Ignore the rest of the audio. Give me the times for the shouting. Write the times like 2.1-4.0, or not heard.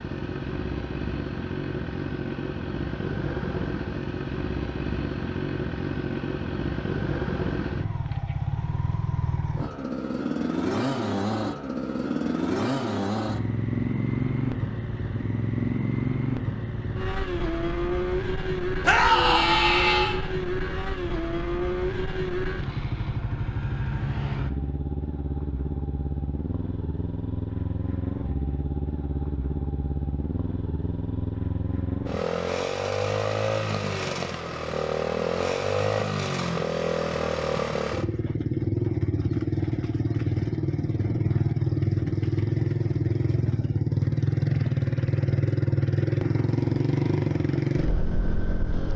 18.8-20.1.